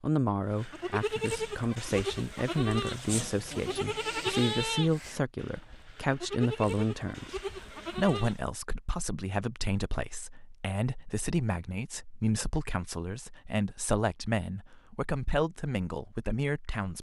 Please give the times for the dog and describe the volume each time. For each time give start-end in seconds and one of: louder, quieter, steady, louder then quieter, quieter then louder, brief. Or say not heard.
not heard.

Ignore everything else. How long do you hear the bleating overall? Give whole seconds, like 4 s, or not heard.
8 s.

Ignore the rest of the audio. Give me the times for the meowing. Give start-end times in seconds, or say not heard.
not heard.